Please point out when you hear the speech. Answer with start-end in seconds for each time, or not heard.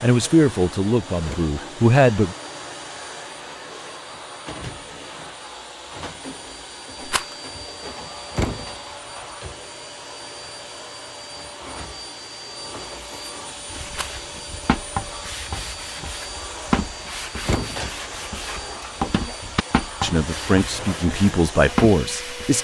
0.0-2.4, 20.0-22.5.